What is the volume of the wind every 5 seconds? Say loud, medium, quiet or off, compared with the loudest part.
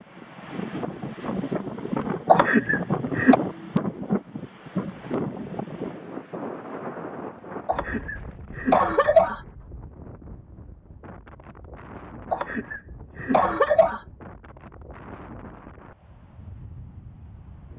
loud, medium, quiet, quiet.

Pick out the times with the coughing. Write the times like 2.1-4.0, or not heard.
2.2-3.4, 7.7-9.4, 12.3-14.0.